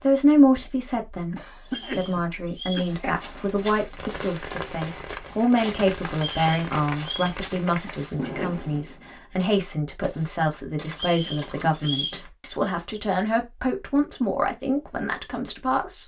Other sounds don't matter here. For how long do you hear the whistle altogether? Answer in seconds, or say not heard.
4 s.